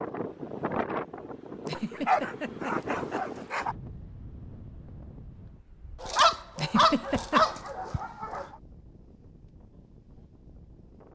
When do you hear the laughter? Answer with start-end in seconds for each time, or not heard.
1.6-3.5, 6.5-7.5.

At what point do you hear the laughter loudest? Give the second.
7 s.